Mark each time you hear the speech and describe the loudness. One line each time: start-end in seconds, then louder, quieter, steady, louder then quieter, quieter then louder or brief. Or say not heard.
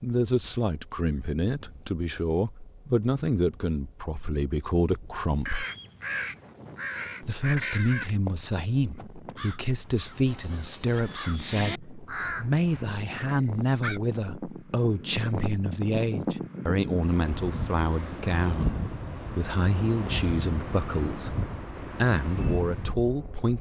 0.0-5.7 steady
7.2-23.5 steady.